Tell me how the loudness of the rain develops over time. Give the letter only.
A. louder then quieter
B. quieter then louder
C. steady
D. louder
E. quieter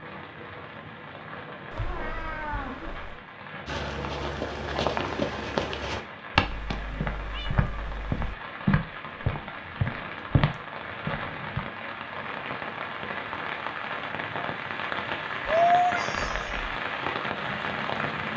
D.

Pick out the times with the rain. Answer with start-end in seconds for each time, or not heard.
0.0-18.3.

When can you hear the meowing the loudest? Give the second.
16 s.